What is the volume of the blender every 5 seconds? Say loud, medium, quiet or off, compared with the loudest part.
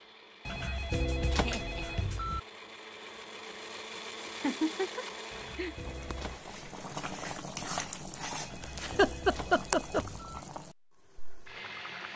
loud, loud, off.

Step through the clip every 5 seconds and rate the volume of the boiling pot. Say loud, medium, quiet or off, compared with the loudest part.
off, loud, medium.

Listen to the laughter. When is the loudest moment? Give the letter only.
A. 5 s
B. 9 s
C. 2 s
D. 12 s
B.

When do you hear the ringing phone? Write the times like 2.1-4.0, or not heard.
0.5-2.4, 5.3-6.4, 8.4-10.4.